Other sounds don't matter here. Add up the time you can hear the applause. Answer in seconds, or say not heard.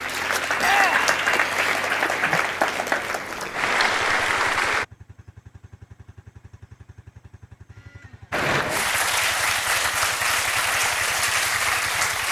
9 s.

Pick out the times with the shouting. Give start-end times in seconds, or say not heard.
0.6-1.1.